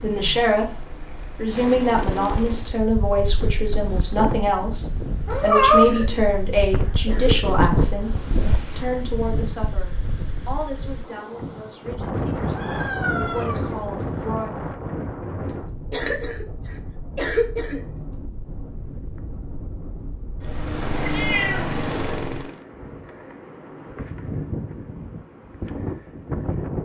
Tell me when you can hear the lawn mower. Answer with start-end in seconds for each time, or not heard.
0.0-2.9, 20.4-22.6.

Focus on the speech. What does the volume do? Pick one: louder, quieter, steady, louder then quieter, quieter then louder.
quieter.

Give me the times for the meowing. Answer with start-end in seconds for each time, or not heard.
5.2-5.9, 12.5-14.3, 20.4-22.4.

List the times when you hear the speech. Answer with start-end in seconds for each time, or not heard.
0.0-14.6.